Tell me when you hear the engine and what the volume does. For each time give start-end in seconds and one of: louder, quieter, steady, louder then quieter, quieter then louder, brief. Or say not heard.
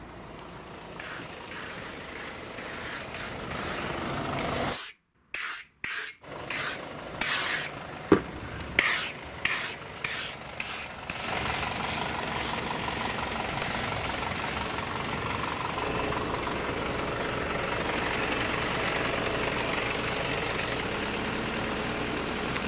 0.0-4.8 louder
6.2-22.6 louder.